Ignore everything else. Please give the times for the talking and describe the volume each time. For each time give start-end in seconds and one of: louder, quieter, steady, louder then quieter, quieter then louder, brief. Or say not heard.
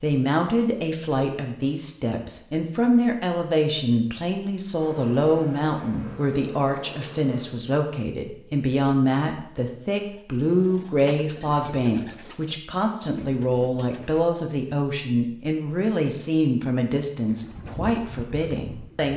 0.0-19.1 steady.